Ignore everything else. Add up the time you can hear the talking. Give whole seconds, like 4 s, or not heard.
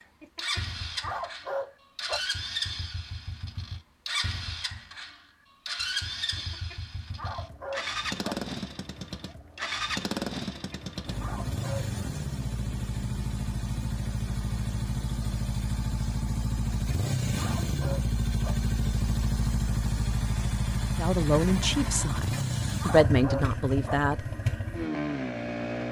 3 s.